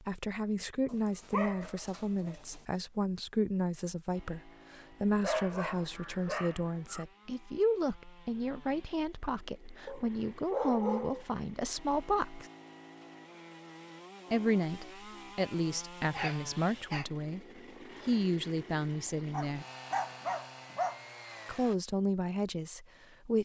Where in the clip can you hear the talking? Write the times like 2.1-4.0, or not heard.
0.0-12.4, 14.3-17.4, 18.1-19.6, 21.4-23.4.